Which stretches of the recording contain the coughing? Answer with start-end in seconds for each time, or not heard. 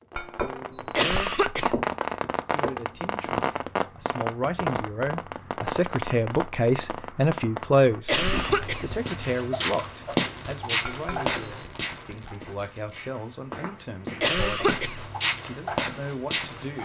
0.9-1.9, 8.1-8.9, 14.2-15.1.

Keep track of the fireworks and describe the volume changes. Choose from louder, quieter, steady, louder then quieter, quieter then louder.
quieter.